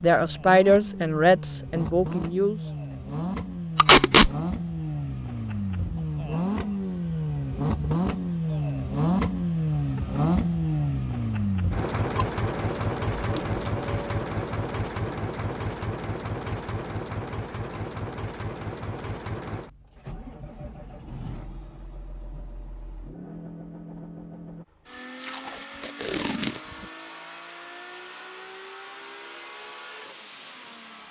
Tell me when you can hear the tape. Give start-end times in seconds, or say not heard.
3.8-4.3, 13.2-13.7, 25.2-26.6.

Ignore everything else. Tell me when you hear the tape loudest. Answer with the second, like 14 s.
4 s.